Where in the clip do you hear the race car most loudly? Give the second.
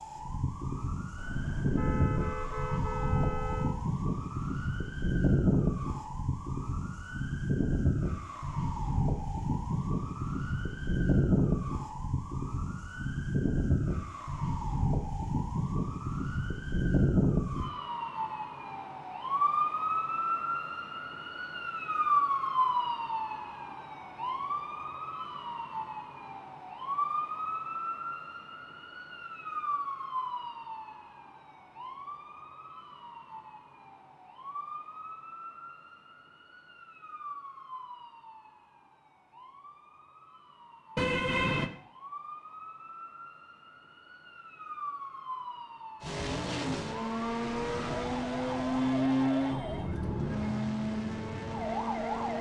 49 s.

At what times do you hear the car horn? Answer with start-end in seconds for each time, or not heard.
1.1-3.8, 41.0-41.7.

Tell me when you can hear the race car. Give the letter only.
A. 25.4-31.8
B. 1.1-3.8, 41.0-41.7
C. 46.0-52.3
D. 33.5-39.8
C.